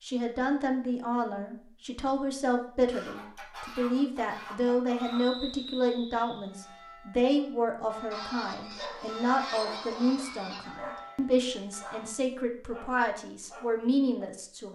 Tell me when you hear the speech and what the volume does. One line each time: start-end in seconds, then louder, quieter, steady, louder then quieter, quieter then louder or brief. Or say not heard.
0.0-14.7 steady.